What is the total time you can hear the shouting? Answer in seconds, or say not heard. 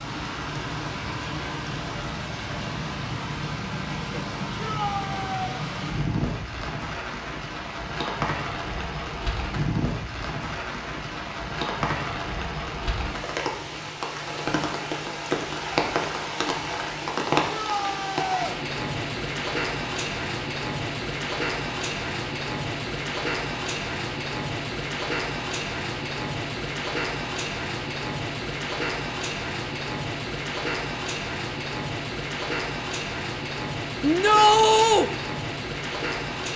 3 s.